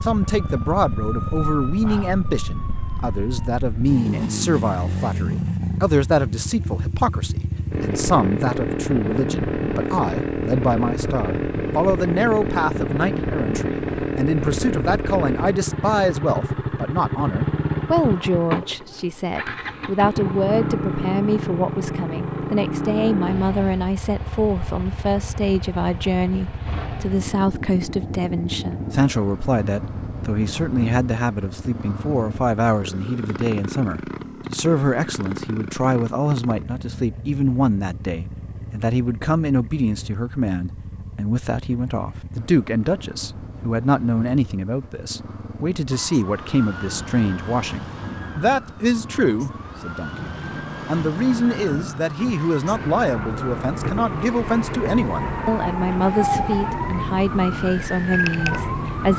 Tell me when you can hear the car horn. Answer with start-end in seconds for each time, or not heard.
not heard.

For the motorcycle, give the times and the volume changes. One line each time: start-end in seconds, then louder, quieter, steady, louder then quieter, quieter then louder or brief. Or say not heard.
0.0-59.1 quieter.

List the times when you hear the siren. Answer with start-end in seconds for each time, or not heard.
0.2-3.5, 45.9-59.1.